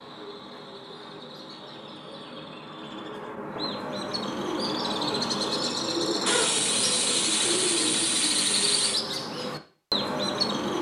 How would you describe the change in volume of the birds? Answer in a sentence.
The loudness of the birds goes up.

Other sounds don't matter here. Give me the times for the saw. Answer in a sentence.
The saw can be heard from 6.2 to 9.0 s.